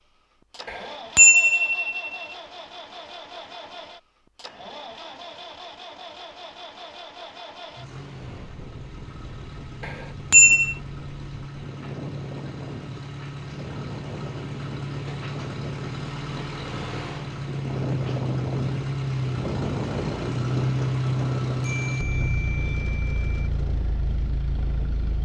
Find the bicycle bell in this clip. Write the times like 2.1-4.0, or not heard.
0.7-2.2, 9.8-10.8, 21.6-23.2.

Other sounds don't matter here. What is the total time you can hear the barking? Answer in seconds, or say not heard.
not heard.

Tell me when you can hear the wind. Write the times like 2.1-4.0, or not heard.
8.1-25.2.